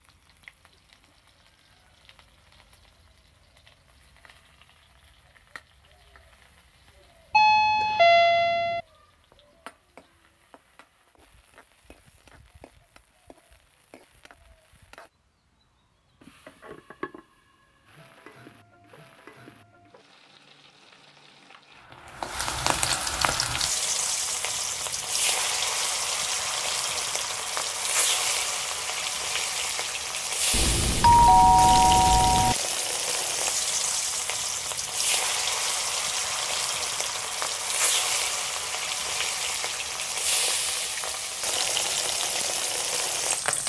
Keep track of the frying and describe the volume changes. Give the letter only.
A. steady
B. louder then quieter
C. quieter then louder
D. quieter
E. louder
E.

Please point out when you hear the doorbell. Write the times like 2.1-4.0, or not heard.
7.3-8.8, 30.5-32.5.